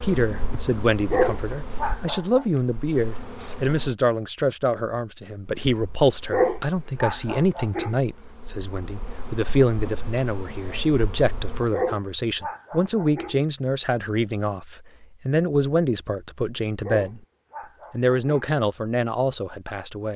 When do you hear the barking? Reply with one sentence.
The barking can be heard from 1.1 to 2.5 s, from 6.3 to 8.0 s, from 11.7 to 13.3 s and from 16.8 to 18.4 s.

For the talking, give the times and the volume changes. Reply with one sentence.
You can hear the talking from 0.0 to 17.2 s, at a steady volume; and briefly from 17.9 to 20.1 s.